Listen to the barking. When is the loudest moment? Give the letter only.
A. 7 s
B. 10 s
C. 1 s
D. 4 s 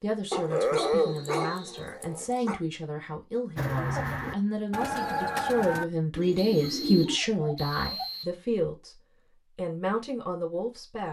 C.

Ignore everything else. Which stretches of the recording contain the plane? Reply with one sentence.
The plane can't be heard in this clip.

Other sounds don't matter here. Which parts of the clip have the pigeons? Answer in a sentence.
You can hear the pigeons from 3.5 to 7.2 s.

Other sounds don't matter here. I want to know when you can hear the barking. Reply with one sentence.
The barking can be heard from 0.3 to 2.6 s and from 6.2 to 8.1 s.